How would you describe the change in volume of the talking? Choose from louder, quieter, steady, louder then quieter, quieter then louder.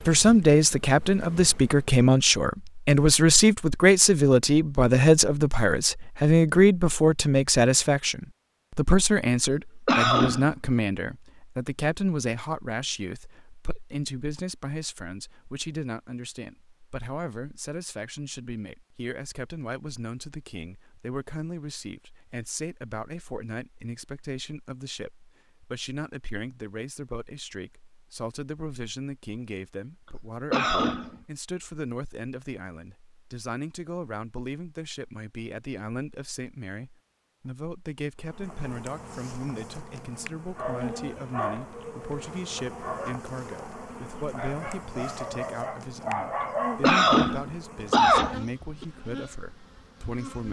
quieter.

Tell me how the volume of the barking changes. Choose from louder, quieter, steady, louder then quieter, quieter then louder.
quieter then louder.